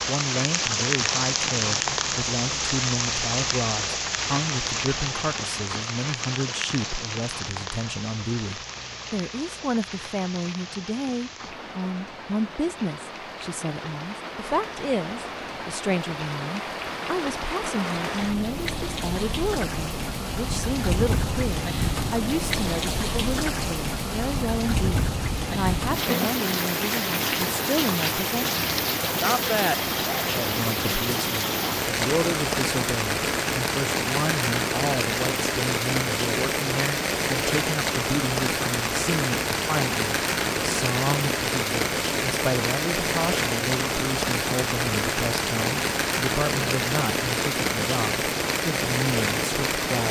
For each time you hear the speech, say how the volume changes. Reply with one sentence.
You can hear the speech from 0.1 to 50.0 s, at a steady volume.